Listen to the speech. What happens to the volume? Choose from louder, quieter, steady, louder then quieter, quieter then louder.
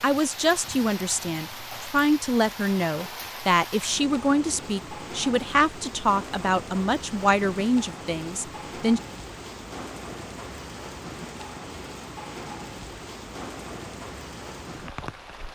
steady.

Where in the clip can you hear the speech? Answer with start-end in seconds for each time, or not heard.
0.0-9.0.